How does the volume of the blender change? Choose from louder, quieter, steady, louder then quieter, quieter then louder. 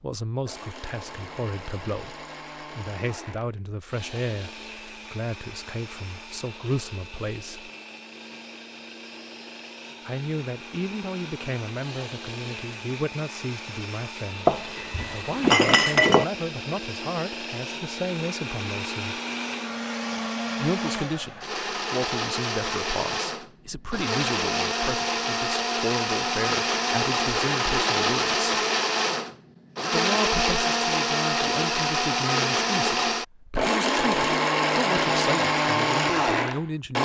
louder.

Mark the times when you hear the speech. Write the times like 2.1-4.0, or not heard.
0.0-7.7, 10.1-19.2, 20.6-28.5, 29.9-37.0.